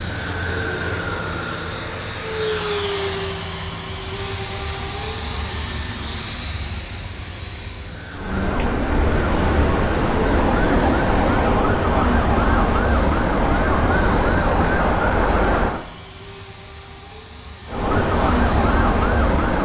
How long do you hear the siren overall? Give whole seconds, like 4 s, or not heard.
10 s.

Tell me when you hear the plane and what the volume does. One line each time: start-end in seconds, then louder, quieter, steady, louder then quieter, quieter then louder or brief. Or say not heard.
0.0-19.6 quieter.